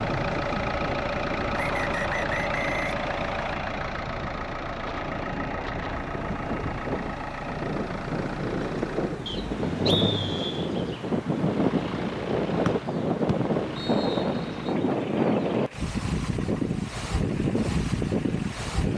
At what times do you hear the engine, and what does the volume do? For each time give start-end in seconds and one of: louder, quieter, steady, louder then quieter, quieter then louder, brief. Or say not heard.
0.0-18.9 quieter.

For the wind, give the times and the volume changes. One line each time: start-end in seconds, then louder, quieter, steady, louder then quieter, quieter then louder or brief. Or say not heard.
0.0-18.9 louder.